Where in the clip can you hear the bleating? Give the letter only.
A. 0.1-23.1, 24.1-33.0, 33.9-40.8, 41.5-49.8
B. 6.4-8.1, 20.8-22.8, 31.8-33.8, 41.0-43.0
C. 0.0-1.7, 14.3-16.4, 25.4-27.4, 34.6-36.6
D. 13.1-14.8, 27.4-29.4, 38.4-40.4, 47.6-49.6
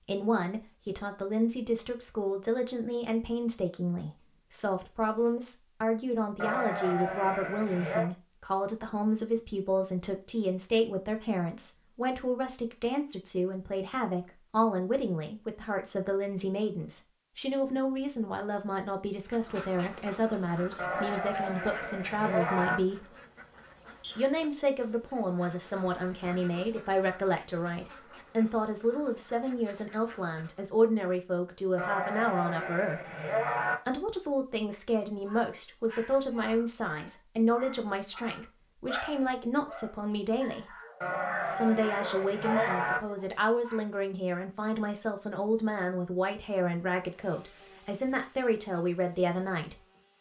B.